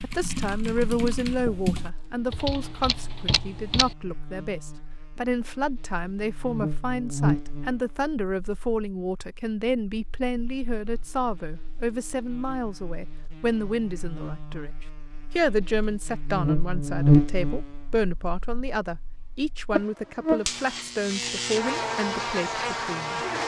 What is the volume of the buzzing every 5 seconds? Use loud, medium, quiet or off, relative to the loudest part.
quiet, medium, quiet, loud, loud.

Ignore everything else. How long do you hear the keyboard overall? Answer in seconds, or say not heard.
4 s.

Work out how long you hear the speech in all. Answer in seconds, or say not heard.
23 s.